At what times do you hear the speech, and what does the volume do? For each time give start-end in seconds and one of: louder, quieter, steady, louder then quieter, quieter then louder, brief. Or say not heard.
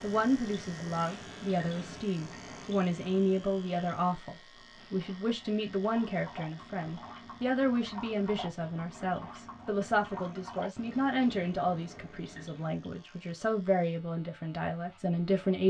0.0-15.6 steady.